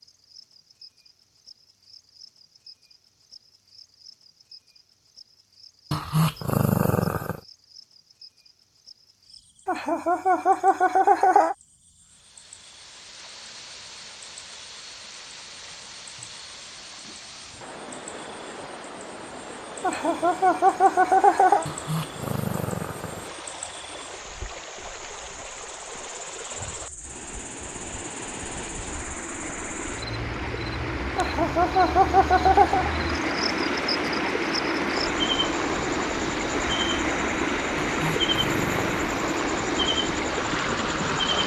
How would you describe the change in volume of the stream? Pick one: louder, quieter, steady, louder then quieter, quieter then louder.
louder.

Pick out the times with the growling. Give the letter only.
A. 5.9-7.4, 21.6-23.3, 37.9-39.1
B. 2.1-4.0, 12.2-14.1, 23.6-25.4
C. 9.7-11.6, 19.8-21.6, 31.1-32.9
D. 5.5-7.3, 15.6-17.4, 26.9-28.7
A.